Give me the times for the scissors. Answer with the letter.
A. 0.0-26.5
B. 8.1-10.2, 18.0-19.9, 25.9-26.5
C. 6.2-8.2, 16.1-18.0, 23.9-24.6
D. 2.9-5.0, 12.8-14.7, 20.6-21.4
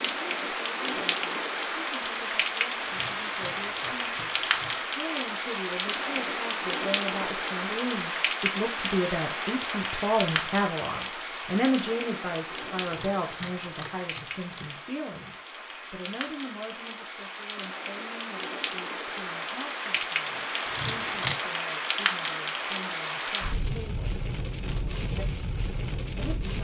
D.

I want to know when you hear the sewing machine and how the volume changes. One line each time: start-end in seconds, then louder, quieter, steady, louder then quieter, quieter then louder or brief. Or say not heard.
not heard.